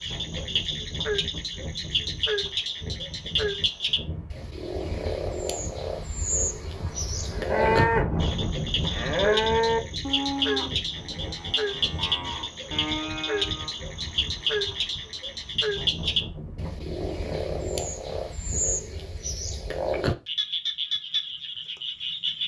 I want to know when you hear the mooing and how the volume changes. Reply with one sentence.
The mooing can be heard from 6.7 to 13.7 s, getting quieter then louder.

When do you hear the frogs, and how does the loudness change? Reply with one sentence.
You can hear the frogs from 0.0 to 22.4 s, at a steady volume.